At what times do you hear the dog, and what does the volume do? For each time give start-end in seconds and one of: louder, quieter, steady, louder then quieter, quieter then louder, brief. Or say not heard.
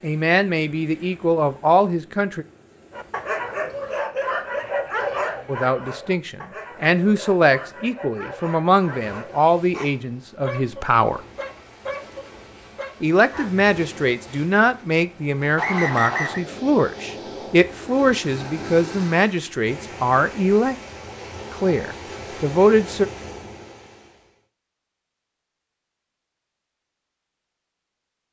2.9-13.6 quieter.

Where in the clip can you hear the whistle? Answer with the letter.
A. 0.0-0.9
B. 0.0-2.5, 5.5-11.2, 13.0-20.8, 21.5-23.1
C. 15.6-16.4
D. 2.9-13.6
C.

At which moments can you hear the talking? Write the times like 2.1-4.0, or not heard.
0.0-2.5, 5.5-11.2, 13.0-20.8, 21.5-23.1.